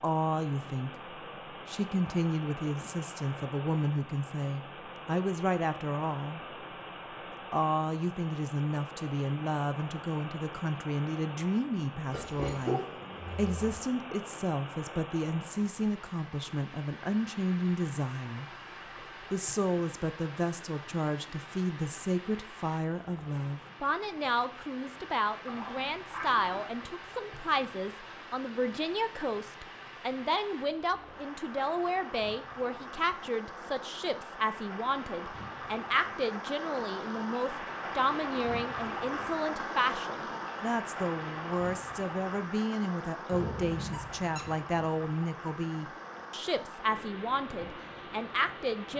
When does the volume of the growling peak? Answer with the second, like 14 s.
13 s.